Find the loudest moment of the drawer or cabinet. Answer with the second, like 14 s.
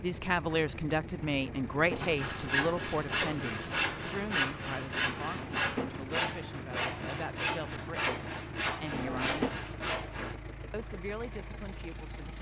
9 s.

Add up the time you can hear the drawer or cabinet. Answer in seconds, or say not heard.
2 s.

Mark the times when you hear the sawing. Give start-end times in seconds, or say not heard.
2.0-10.3.